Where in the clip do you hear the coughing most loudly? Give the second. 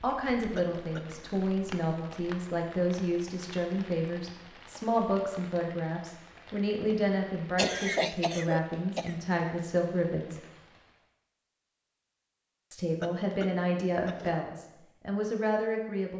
8 s.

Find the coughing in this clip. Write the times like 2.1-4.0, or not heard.
0.5-1.4, 7.5-9.2, 13.0-14.4.